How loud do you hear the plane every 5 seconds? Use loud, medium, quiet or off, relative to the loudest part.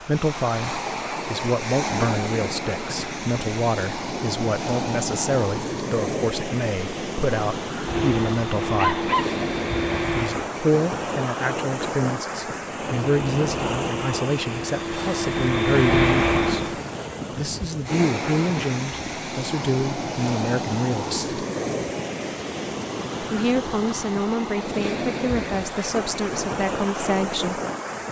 off, medium, medium, loud, off, off.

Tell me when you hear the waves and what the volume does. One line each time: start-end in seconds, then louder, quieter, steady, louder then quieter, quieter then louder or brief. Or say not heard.
0.0-28.0 steady.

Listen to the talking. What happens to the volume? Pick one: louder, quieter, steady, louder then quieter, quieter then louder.
steady.